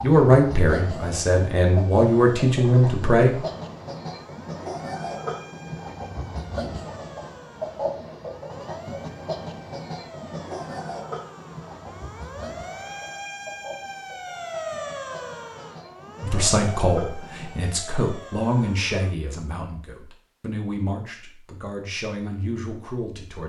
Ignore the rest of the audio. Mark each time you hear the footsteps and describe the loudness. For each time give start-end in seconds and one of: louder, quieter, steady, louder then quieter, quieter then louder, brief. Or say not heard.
not heard.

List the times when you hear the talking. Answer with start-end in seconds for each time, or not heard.
0.0-3.4, 16.2-23.4.